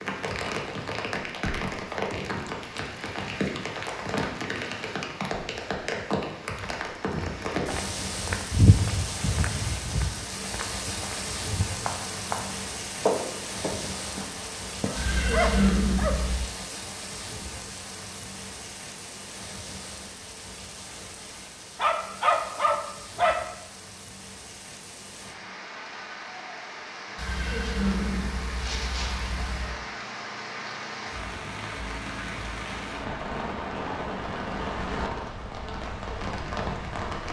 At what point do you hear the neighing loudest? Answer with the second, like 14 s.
16 s.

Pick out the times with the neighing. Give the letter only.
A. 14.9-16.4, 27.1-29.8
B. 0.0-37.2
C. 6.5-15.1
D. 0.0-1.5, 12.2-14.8
A.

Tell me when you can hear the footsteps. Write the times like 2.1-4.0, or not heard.
6.5-15.1.